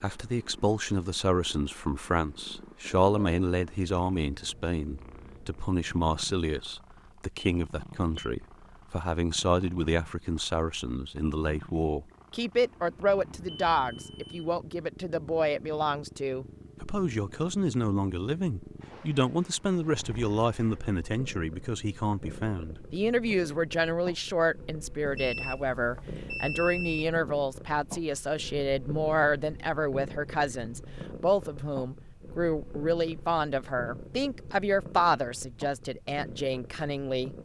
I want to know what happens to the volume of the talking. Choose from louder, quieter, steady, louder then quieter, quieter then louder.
steady.